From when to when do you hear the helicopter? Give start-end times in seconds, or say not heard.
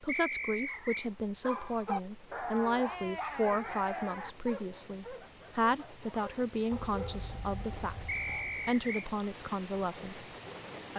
not heard.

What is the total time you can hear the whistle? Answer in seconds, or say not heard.
2 s.